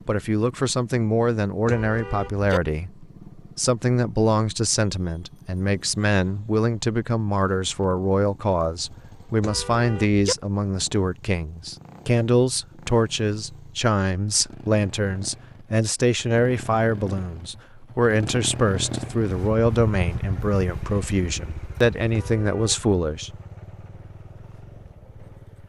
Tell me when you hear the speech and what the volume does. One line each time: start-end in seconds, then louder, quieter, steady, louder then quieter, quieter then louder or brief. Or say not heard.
0.1-23.3 steady.